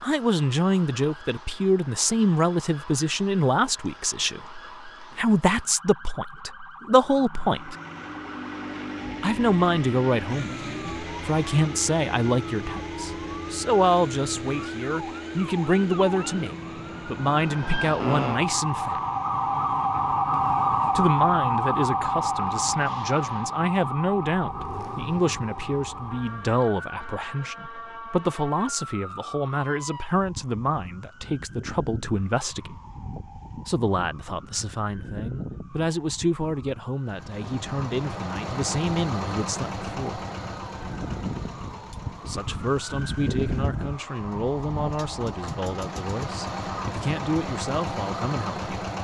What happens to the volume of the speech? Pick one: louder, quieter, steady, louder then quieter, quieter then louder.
quieter.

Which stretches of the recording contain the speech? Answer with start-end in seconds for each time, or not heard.
0.0-7.8, 9.2-19.0, 20.9-32.8, 33.6-40.2, 42.2-48.8.